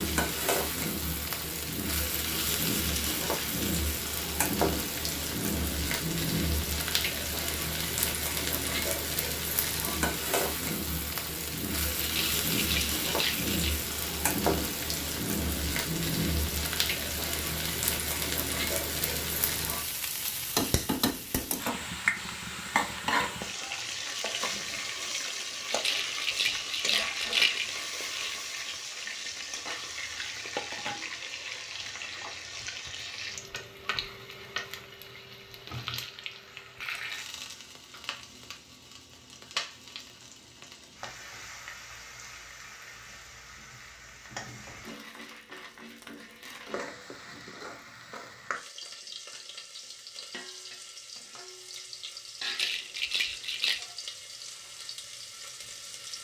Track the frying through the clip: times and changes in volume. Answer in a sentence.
You can hear the frying from 0.0 to 56.1 s, getting quieter.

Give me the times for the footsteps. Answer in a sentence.
You can't hear the footsteps here.